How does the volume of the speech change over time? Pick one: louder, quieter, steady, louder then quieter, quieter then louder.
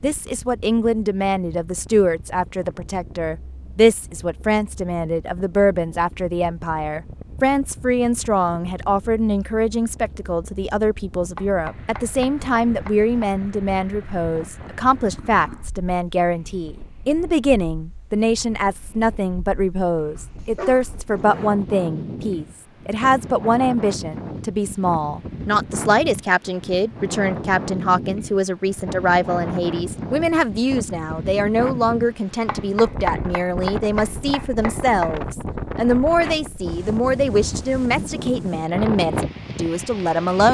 steady.